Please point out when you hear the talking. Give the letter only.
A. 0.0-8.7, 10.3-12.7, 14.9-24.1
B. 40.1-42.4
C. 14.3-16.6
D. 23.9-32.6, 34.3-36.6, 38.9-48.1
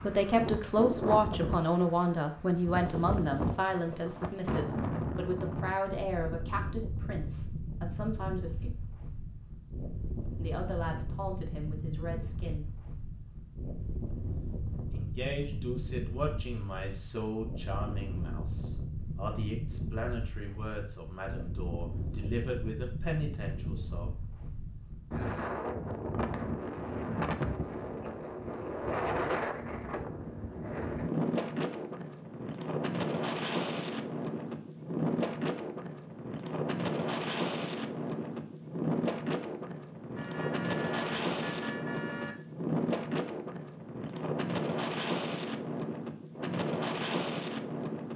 A.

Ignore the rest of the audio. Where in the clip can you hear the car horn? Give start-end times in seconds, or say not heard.
40.1-42.4.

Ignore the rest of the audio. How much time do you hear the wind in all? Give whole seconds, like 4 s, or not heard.
48 s.